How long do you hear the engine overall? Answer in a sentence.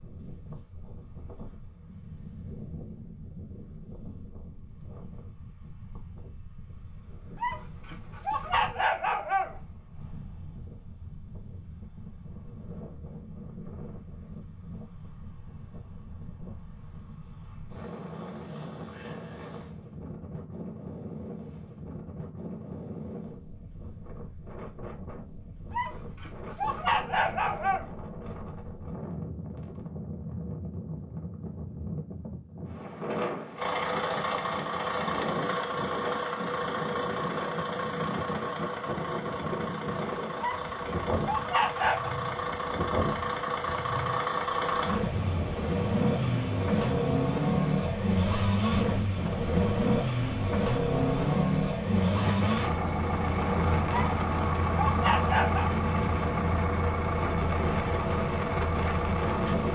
You can hear the engine for 26 seconds altogether.